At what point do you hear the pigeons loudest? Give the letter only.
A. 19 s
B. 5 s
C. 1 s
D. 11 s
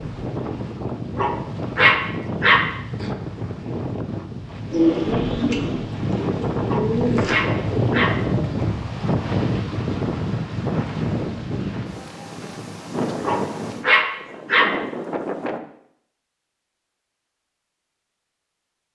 B.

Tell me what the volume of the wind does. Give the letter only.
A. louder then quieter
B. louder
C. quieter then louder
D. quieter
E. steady
A.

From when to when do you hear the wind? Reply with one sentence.
You can hear the wind from 0.0 to 15.6 s.